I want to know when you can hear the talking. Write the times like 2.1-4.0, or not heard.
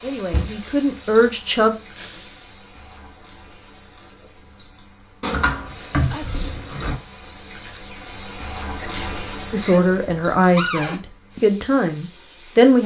0.0-1.8, 9.5-12.8.